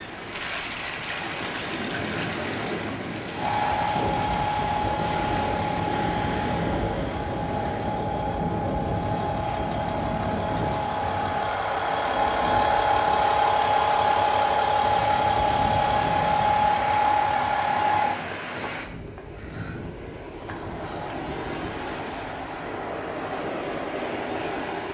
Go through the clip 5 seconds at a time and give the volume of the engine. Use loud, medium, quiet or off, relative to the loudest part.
loud, medium, loud, loud, off.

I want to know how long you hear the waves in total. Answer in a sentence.
You can hear the waves for 25 seconds altogether.